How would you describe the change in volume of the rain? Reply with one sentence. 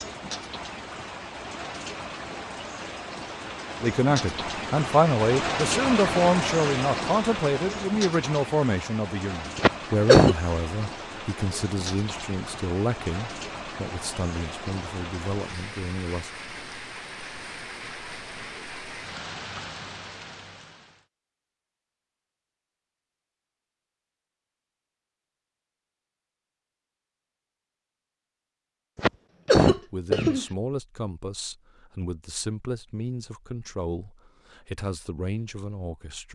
The volume of the rain goes up, then down.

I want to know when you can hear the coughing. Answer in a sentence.
The coughing can be heard from 9.6 to 10.3 s and from 28.9 to 30.4 s.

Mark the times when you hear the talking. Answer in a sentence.
You can hear the talking from 3.8 to 16.3 s and from 29.8 to 36.3 s.